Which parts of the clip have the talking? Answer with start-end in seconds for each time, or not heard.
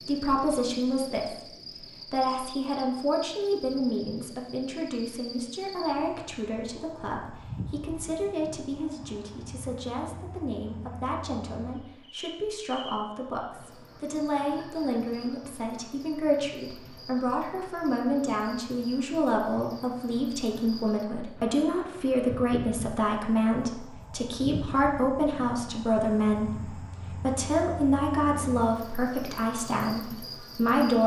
0.1-31.0.